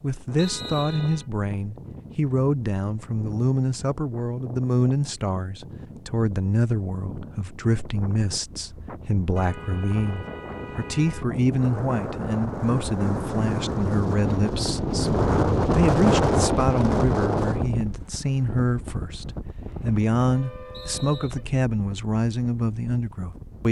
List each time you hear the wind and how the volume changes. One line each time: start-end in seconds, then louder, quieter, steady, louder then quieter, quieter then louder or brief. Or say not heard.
0.0-23.6 louder then quieter.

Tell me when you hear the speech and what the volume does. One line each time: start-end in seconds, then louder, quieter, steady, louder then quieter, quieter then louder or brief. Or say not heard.
0.0-23.6 steady.